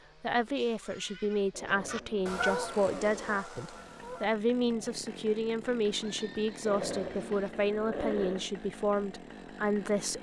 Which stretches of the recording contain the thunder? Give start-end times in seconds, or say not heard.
not heard.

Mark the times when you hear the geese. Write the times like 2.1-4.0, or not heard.
1.6-4.2.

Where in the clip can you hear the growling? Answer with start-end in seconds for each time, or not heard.
1.5-3.5, 6.7-8.5.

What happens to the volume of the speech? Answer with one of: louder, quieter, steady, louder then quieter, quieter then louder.
steady.